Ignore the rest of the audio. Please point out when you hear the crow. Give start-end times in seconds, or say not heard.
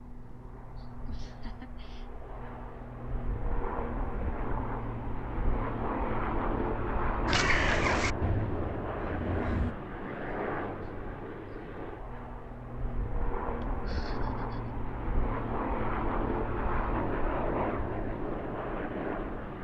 7.2-9.8.